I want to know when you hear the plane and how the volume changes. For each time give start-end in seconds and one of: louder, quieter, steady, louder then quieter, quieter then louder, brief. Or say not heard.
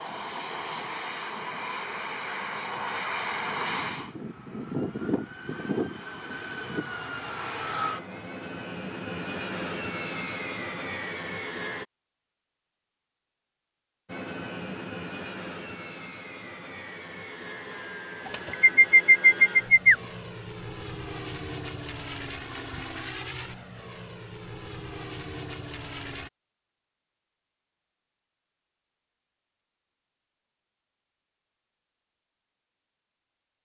0.0-11.8 steady
14.1-26.3 steady.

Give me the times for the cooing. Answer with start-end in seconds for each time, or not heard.
18.2-19.9.